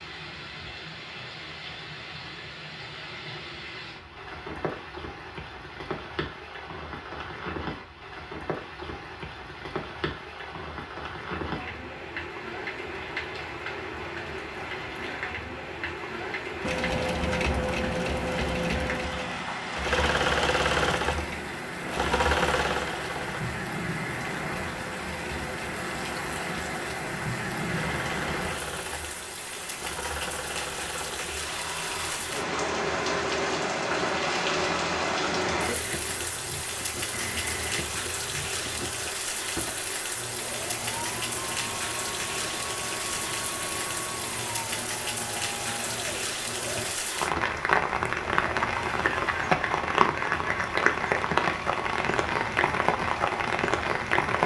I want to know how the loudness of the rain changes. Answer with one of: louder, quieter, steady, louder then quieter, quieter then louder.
louder.